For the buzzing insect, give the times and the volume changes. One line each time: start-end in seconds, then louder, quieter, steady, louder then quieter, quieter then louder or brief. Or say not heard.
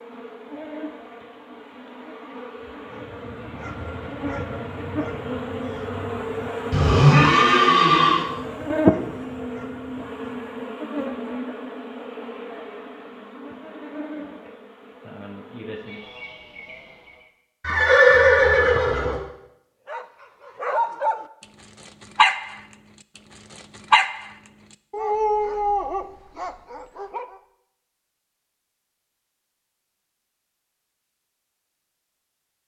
0.0-17.3 louder then quieter.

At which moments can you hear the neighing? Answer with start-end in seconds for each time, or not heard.
6.7-8.2, 17.6-19.2.